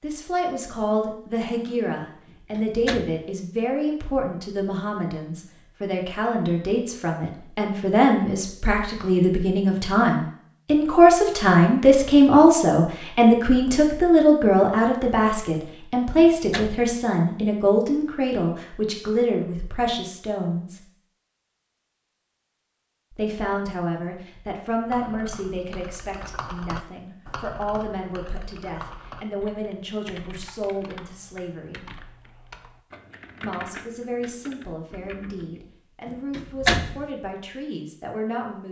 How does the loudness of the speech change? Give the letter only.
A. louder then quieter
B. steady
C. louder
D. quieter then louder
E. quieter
A.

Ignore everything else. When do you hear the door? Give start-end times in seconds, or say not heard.
2.2-3.2, 16.2-16.9, 36.0-37.0.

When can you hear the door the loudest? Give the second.
37 s.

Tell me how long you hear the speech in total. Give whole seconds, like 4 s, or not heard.
35 s.